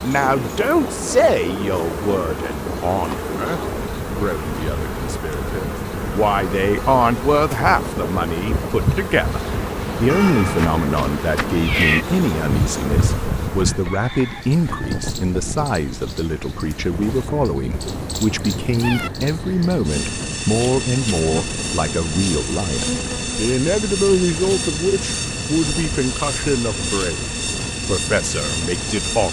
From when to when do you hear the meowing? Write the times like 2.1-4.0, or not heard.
10.1-12.1, 17.7-19.1.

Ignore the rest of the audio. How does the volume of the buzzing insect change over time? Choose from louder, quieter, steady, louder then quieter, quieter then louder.
steady.